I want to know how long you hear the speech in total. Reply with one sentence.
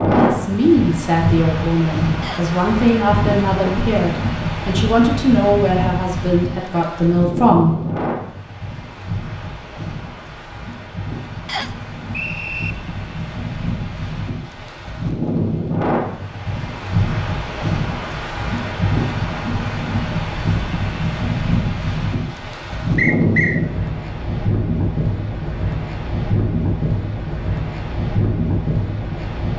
The speech can be heard for 8 seconds in total.